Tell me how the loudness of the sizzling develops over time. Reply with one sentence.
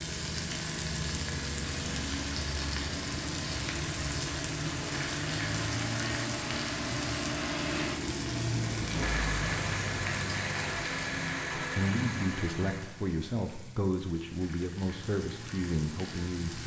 The volume of the sizzling goes down.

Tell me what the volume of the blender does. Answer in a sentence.
The volume of the blender goes up.